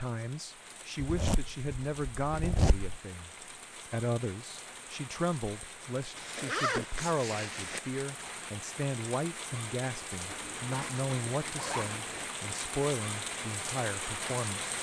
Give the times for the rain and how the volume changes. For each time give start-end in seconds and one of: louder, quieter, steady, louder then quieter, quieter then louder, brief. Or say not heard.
0.0-14.7 louder.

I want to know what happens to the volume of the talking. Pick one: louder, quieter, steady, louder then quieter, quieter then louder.
steady.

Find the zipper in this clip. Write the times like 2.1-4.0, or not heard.
0.9-3.0, 6.2-7.8, 10.2-12.3.